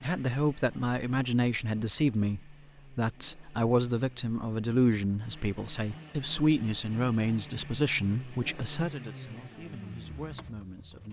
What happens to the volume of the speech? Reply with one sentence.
The loudness of the speech goes down.